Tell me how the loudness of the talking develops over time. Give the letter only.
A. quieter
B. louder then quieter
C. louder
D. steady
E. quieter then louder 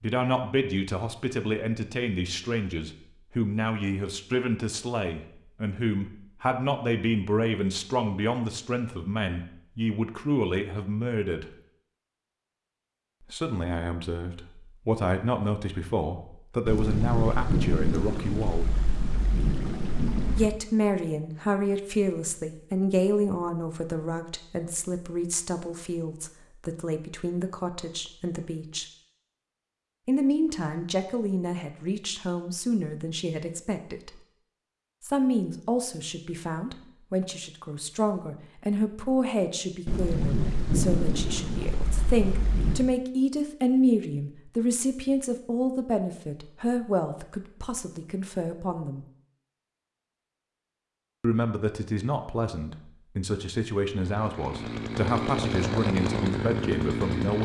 D.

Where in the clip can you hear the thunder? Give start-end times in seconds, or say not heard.
16.6-20.5, 39.9-42.9.